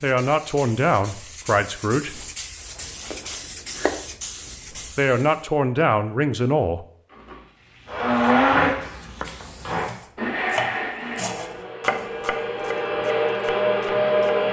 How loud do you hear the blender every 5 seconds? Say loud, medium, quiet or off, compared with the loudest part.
off, loud, loud.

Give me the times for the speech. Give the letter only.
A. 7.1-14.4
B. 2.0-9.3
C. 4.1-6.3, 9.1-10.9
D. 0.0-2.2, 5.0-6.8
D.